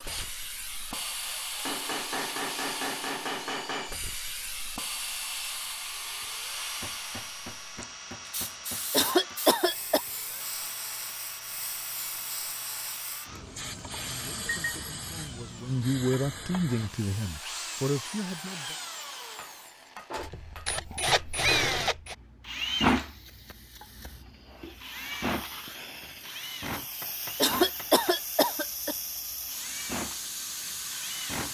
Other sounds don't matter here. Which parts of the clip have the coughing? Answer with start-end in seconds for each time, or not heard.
8.9-10.0, 27.4-28.9.